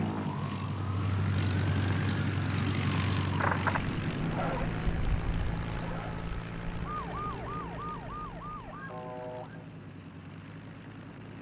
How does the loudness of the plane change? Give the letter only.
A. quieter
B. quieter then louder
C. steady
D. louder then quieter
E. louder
A.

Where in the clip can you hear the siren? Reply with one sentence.
You can hear the siren from 0.0 to 9.7 s.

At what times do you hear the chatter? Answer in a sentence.
You can't hear the chatter here.